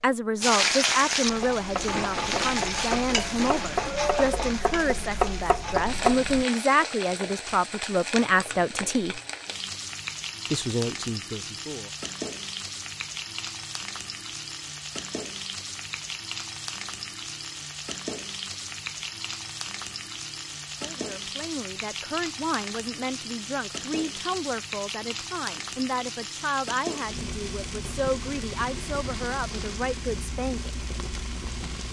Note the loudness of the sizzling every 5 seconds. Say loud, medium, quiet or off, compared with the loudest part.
loud, medium, medium, medium, medium, medium, medium.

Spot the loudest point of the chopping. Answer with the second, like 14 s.
6 s.